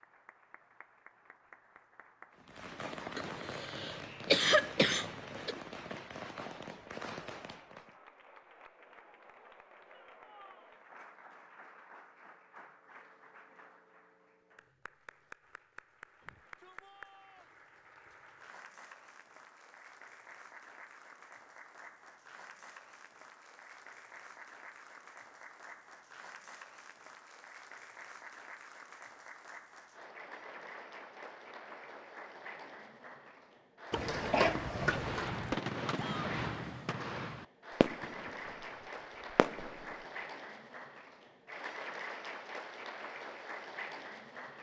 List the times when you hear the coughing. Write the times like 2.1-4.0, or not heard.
3.1-5.5, 33.9-35.3.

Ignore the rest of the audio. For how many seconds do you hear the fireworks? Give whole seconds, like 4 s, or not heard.
11 s.